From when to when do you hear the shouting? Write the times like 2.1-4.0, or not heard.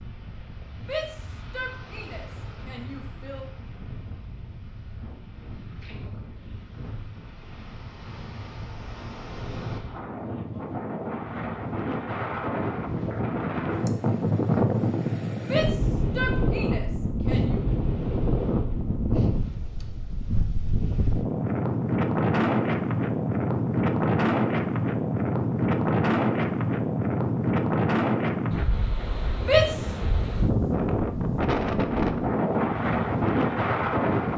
0.8-3.5, 15.4-17.6, 29.4-29.9.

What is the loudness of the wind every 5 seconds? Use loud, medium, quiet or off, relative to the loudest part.
quiet, quiet, loud, loud, loud, loud, loud.